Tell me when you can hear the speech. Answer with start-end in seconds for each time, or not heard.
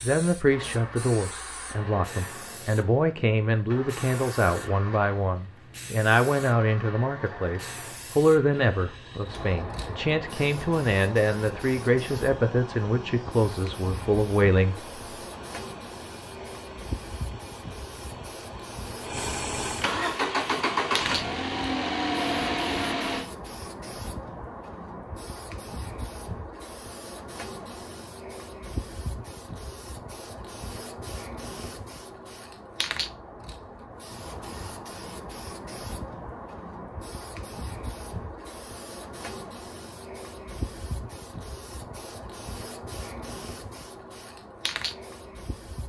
0.0-14.8.